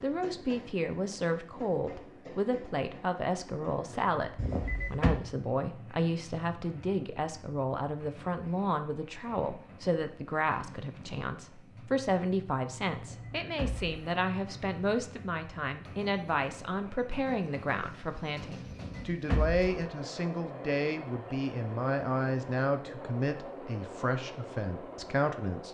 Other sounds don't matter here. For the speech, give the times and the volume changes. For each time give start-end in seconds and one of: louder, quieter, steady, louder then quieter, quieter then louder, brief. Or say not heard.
0.0-25.6 steady.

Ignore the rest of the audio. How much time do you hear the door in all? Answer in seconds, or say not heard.
3 s.